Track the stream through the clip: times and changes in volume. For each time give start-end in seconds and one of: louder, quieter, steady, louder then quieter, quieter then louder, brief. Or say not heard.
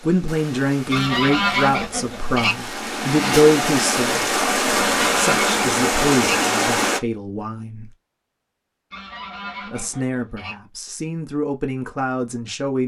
0.0-7.0 louder.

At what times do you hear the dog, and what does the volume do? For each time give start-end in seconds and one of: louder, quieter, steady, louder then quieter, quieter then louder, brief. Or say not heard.
not heard.